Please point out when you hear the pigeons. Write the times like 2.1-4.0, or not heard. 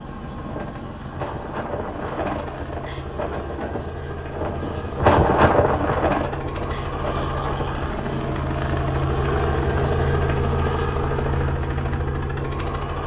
not heard.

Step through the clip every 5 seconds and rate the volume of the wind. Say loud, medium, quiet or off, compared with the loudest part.
medium, loud, off.